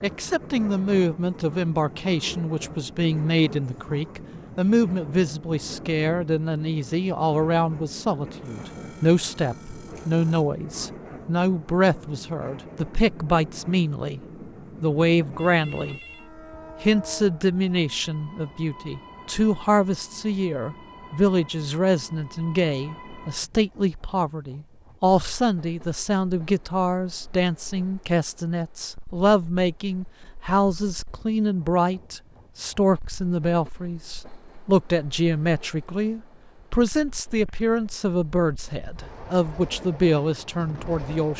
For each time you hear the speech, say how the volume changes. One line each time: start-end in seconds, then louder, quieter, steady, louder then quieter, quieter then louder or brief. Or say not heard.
0.0-14.2 steady
14.8-16.0 brief
16.8-41.3 steady.